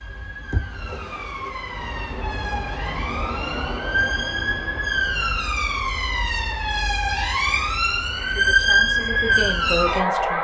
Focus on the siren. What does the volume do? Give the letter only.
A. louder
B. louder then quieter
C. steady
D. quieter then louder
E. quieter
A.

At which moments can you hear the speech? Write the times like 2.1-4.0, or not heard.
8.2-10.3.